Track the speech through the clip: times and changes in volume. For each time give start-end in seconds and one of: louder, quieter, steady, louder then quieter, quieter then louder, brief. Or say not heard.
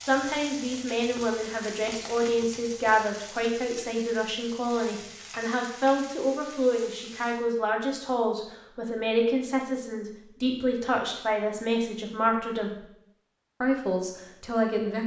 0.0-12.8 steady
13.6-15.0 brief.